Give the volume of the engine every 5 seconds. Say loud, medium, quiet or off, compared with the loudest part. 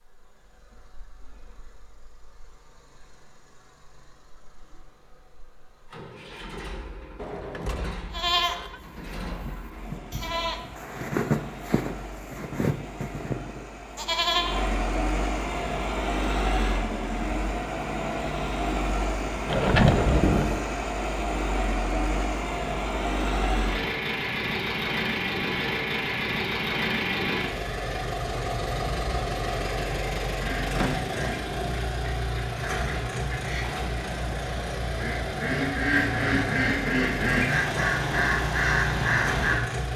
quiet, quiet, medium, loud, loud, loud, loud, loud.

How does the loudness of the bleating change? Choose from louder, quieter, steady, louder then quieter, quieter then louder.
louder.